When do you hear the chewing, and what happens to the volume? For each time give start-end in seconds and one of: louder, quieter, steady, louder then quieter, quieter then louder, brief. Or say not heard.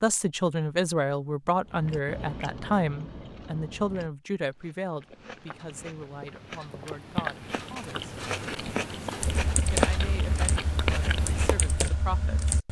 1.6-11.9 quieter then louder.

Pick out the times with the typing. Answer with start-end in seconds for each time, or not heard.
9.2-12.6.